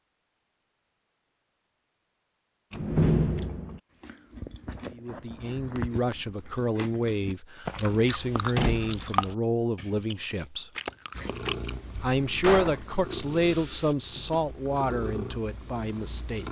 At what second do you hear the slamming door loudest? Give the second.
3 s.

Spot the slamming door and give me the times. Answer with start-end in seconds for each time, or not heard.
2.7-3.8, 8.6-9.0, 12.4-12.8.